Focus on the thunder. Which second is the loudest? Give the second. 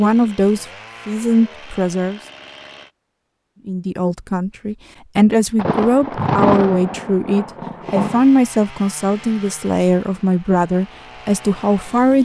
6 s.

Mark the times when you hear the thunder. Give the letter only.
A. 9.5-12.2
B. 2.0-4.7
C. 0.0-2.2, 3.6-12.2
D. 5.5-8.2
D.